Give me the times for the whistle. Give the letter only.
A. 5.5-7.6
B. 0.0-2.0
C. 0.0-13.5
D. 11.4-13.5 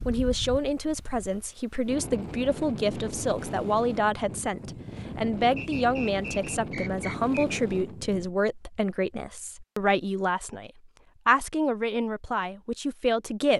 A.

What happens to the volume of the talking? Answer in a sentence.
The volume of the talking stays about the same.